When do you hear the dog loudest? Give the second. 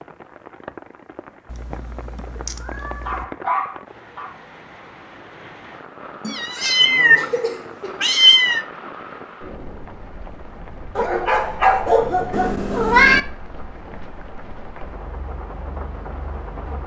12 s.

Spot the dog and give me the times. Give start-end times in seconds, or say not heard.
3.0-4.3, 10.9-12.5.